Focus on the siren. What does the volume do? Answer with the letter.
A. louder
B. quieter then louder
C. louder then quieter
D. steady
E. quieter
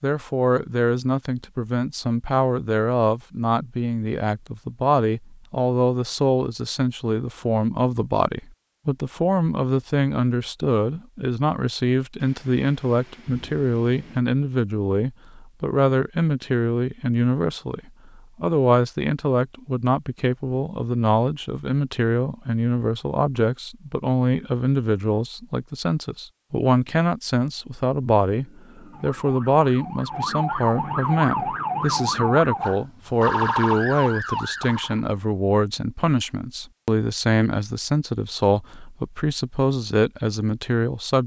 A.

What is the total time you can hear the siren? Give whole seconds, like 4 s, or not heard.
7 s.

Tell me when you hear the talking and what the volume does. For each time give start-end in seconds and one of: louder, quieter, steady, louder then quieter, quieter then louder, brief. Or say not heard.
0.0-41.2 steady.